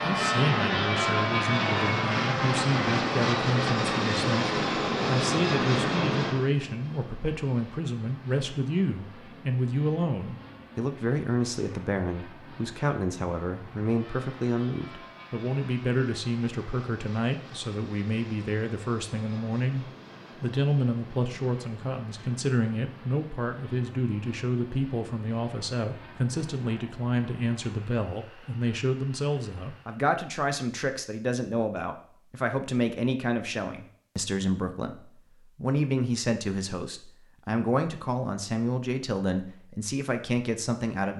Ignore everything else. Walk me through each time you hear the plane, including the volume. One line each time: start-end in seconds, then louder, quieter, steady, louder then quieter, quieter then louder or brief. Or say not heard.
0.0-30.1 quieter.